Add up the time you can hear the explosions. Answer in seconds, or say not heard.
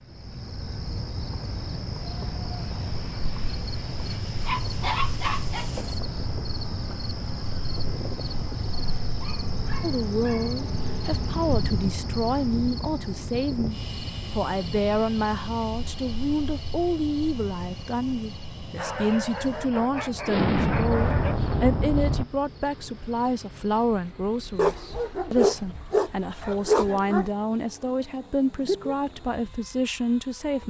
2 s.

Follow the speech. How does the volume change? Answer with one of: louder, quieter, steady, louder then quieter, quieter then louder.
steady.